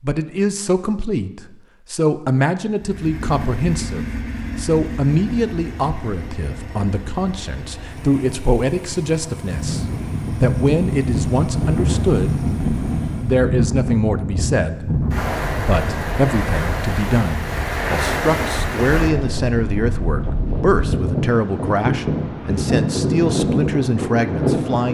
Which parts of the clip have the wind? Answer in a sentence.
The wind can be heard from 9.4 to 24.8 s.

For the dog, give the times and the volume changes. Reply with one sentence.
You can't hear the dog here.